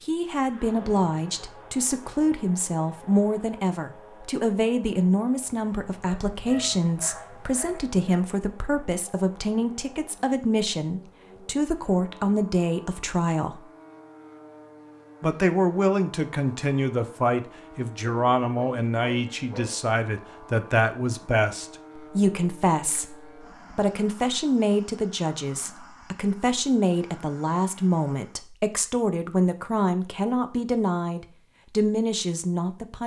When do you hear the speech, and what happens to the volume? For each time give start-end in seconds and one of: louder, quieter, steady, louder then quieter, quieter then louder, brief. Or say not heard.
0.0-13.7 steady
15.2-33.0 steady.